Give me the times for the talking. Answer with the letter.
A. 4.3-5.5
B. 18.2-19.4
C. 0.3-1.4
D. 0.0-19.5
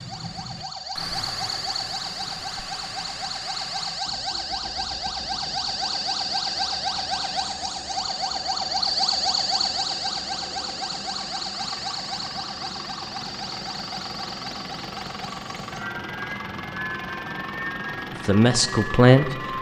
B.